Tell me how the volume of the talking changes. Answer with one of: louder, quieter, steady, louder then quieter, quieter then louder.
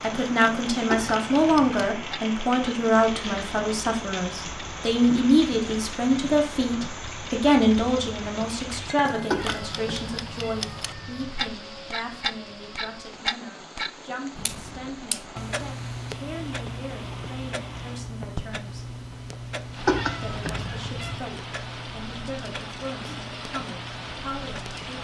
quieter.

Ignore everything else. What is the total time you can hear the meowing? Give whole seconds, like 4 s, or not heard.
4 s.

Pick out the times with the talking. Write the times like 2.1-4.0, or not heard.
0.0-18.9, 20.2-25.0.